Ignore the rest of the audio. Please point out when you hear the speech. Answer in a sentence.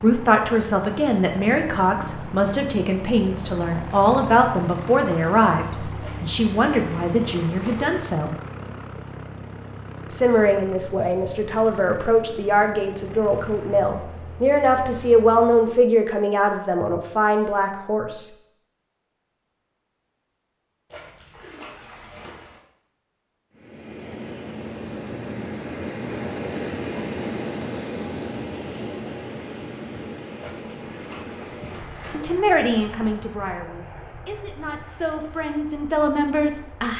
You can hear the speech from 0.0 to 8.3 s, from 10.1 to 18.2 s and from 32.1 to 36.9 s.